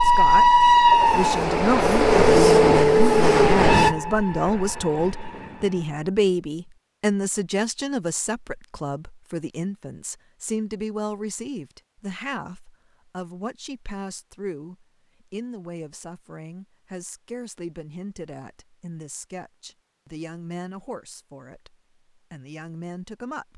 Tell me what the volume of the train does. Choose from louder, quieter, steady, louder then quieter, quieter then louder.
quieter.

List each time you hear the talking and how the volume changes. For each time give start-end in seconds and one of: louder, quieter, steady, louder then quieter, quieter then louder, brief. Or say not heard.
0.0-23.5 quieter.